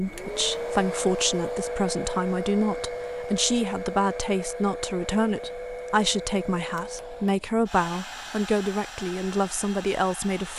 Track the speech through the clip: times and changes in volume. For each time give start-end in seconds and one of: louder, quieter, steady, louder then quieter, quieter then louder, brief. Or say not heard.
0.0-10.5 steady.